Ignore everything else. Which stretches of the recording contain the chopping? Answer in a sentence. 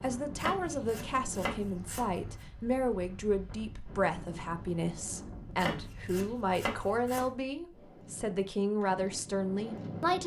You can hear the chopping from 0.3 to 2.5 s and from 5.5 to 7.3 s.